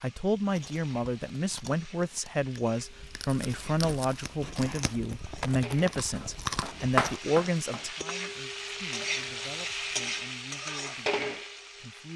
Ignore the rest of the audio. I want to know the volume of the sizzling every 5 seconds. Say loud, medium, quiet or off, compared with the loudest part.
quiet, loud, loud.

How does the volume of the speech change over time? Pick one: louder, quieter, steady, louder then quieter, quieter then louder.
quieter.